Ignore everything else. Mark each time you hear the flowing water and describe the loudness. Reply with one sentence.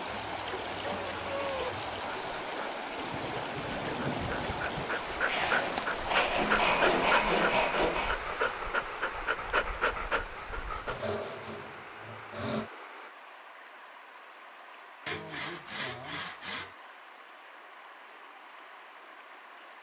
The flowing water can be heard from 0.0 to 19.7 s, getting quieter.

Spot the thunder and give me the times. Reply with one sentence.
You can hear the thunder from 3.0 to 4.8 s.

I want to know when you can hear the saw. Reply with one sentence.
The saw can be heard from 0.1 to 2.2 s, from 5.2 to 8.2 s, from 10.8 to 12.7 s and from 15.1 to 16.8 s.